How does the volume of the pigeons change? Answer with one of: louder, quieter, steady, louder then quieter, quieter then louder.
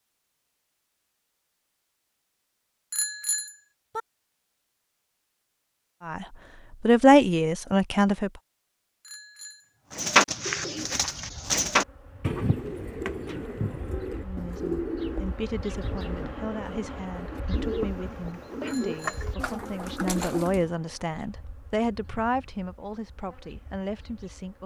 quieter.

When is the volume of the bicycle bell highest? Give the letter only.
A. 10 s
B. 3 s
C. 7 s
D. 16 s
B.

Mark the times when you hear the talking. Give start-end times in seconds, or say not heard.
6.0-8.3, 14.2-24.6.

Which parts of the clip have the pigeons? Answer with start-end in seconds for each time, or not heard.
9.8-20.6.